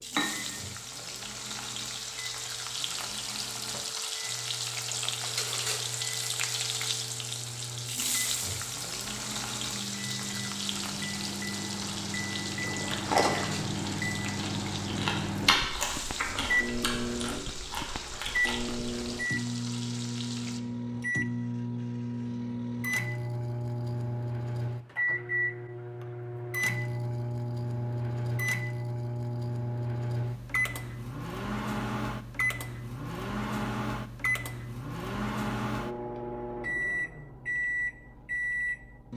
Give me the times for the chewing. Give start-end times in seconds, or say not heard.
12.6-18.6.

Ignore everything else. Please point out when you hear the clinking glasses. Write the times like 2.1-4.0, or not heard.
0.1-0.6.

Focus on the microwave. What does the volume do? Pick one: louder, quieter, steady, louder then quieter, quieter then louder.
louder.